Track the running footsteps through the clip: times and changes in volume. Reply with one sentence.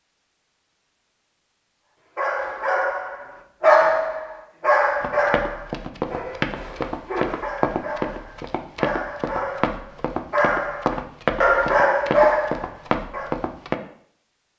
You can hear the running footsteps from 5.0 to 13.8 s, at a steady volume.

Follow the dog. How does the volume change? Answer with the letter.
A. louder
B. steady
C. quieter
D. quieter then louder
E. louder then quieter
D.